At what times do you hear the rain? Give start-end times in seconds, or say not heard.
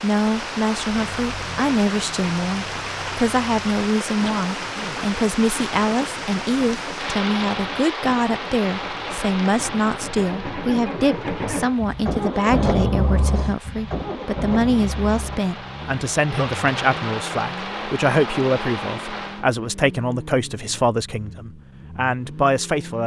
0.0-19.4.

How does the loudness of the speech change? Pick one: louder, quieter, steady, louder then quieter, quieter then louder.
steady.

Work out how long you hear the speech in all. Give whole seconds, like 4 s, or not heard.
23 s.